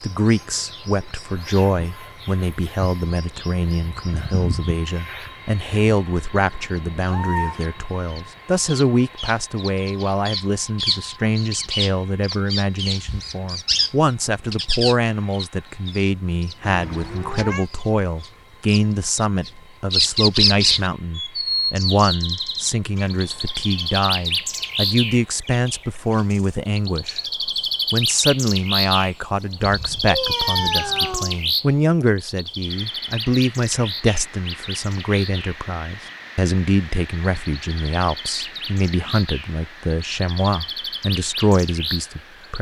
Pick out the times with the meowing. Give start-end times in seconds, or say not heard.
7.0-7.6, 16.6-17.6, 29.6-31.4.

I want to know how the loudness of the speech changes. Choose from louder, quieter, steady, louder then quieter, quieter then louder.
steady.